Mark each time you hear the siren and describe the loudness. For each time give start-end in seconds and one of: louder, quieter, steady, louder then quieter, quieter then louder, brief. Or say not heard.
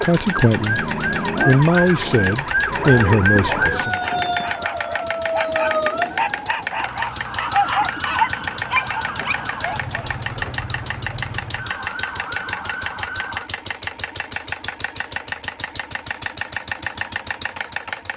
0.0-13.5 quieter.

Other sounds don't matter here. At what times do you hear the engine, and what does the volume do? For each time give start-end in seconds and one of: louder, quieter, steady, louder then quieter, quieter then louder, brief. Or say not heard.
0.0-18.1 steady.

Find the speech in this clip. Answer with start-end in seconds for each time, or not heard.
0.0-0.8, 1.4-4.0.